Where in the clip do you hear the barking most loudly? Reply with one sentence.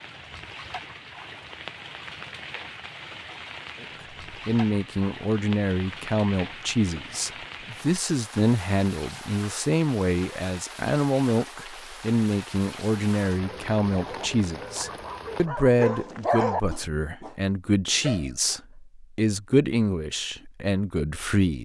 The volume of the barking peaks at 16 seconds.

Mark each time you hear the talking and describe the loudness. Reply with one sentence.
The talking can be heard from 3.8 to 21.5 s, at a steady volume.